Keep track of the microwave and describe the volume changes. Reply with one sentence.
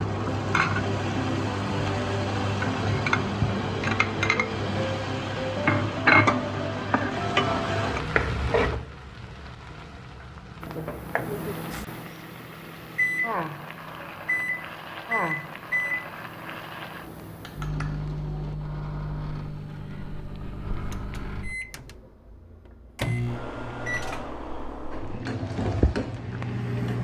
The volume of the microwave stays about the same.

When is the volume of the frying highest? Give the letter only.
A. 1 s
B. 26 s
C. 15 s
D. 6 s
D.